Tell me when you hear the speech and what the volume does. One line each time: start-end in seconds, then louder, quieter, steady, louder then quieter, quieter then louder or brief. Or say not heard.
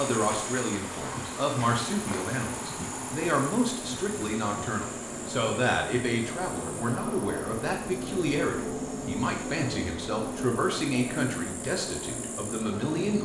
0.0-13.1 steady.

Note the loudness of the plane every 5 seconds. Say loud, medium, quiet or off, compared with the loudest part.
medium, loud, loud.